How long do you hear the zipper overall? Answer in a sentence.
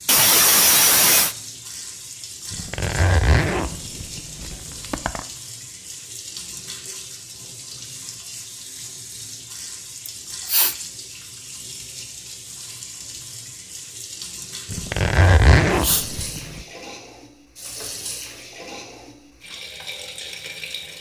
The zipper can be heard for 5 seconds in total.